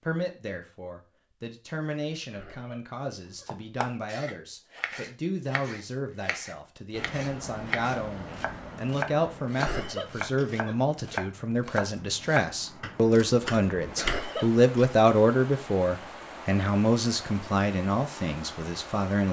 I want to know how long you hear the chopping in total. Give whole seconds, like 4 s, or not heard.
11 s.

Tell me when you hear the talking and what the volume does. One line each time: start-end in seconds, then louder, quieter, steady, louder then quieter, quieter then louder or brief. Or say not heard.
0.0-19.2 louder.